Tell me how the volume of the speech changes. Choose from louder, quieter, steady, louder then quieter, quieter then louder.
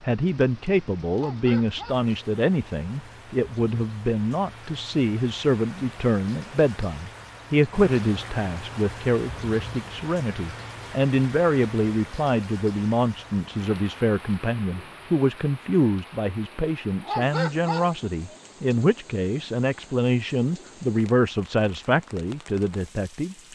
steady.